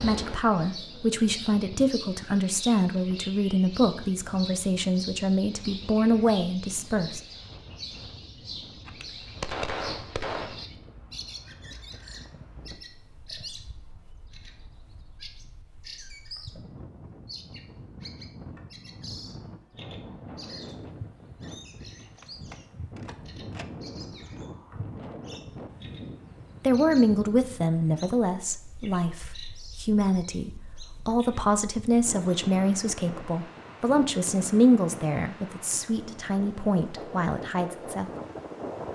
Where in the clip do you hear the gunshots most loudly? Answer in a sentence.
The loudest moment of the gunshots is at 10 seconds.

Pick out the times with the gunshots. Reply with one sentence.
You can hear the gunshots from 8.8 to 10.7 s and from 22.1 to 23.6 s.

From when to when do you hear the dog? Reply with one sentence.
You can't hear the dog here.